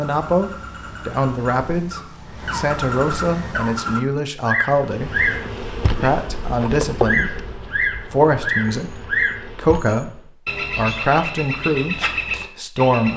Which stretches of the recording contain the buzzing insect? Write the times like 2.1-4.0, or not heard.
4.8-10.3.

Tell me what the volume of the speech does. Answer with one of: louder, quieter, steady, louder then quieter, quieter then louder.
steady.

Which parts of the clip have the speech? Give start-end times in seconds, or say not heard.
0.0-7.3, 8.1-13.1.